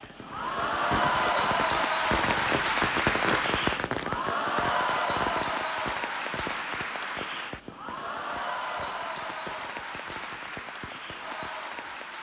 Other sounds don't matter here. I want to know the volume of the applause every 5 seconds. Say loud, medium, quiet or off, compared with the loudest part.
loud, medium, medium.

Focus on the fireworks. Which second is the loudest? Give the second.
3 s.